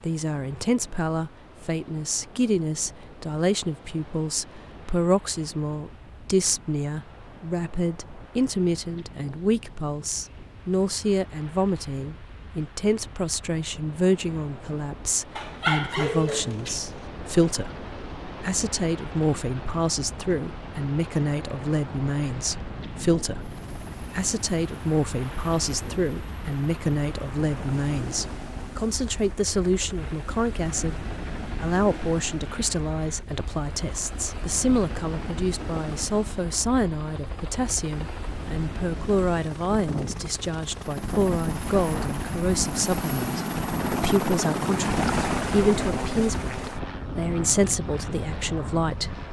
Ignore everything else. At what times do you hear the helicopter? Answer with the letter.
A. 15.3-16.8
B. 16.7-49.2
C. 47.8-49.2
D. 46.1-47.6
B.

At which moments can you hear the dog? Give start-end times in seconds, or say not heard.
15.3-16.8.